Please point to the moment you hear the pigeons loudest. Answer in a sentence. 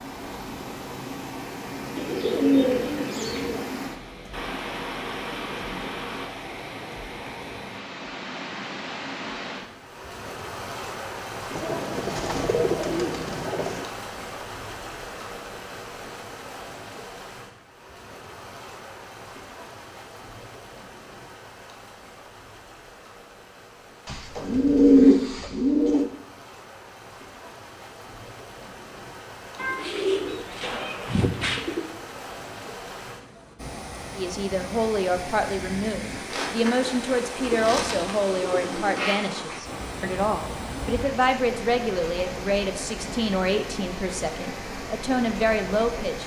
The loudest moment of the pigeons is at 25 seconds.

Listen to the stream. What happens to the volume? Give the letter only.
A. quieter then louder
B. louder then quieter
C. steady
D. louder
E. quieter
A.